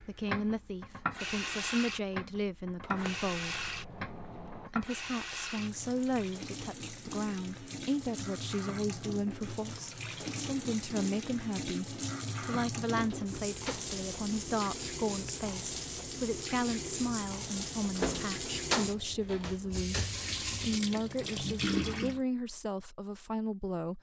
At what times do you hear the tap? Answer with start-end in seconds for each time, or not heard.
0.0-22.2.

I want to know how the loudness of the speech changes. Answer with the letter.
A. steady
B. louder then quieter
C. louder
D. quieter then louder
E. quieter
A.